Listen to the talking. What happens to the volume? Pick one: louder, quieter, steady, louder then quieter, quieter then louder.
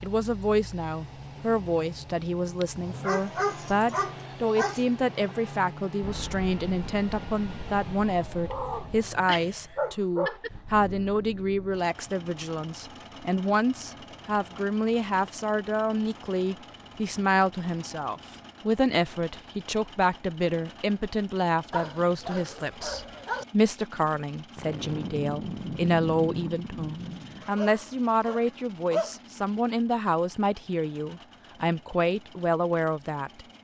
steady.